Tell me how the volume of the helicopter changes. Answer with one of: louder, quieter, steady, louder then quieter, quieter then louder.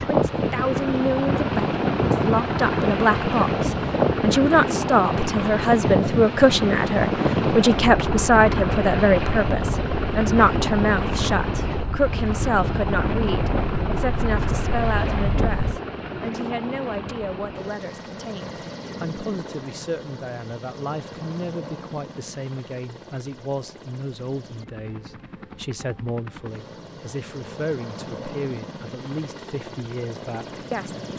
quieter.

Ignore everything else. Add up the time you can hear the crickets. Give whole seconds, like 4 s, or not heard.
not heard.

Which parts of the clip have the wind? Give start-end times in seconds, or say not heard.
0.0-15.8.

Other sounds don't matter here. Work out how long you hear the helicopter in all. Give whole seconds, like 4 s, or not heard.
31 s.